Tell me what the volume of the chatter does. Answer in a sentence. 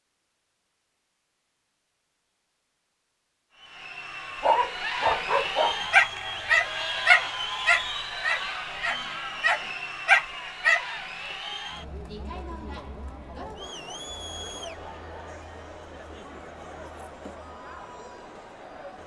The volume of the chatter goes down.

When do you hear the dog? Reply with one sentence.
You can hear the dog from 4.4 to 10.8 s.